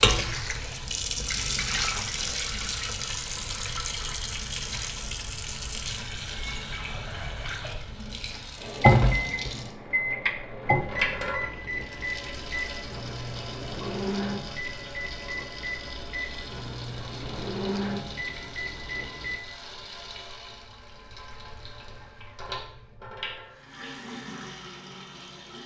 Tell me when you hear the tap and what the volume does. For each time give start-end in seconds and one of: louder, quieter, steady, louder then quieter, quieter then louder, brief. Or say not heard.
0.0-25.6 quieter.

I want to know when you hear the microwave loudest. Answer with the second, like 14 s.
9 s.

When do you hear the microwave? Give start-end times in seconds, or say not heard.
8.6-19.4.